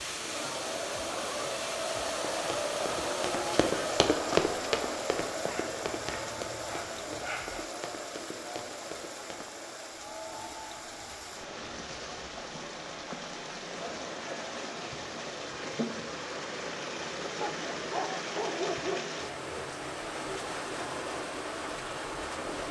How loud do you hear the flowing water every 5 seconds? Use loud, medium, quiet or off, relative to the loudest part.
loud, medium, medium, loud, loud.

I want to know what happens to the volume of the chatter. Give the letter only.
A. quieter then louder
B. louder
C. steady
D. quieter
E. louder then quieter
D.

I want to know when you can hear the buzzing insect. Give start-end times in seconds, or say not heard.
not heard.